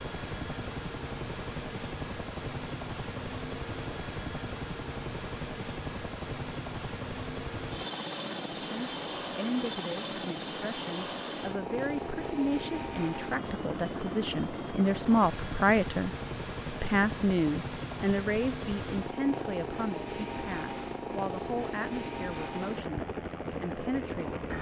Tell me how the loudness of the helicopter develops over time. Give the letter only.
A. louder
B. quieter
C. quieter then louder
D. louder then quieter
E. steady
E.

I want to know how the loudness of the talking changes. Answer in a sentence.
The loudness of the talking goes up, then down.